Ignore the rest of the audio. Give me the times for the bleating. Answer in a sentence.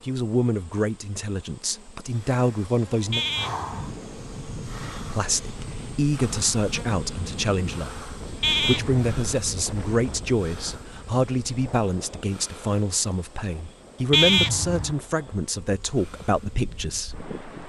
You can hear the bleating from 3.1 to 3.9 s, from 8.4 to 9.1 s and from 14.1 to 14.9 s.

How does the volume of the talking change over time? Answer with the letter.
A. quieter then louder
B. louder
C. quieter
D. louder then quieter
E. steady
E.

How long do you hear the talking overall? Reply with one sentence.
The talking can be heard for 16 seconds in total.